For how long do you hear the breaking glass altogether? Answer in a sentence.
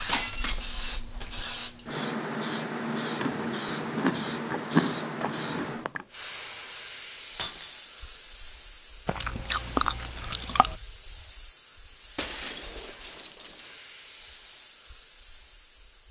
The breaking glass can be heard for 3 seconds in total.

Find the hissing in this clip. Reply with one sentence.
The hissing can be heard from 0.0 to 16.0 s.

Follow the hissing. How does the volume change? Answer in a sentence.
The volume of the hissing goes down.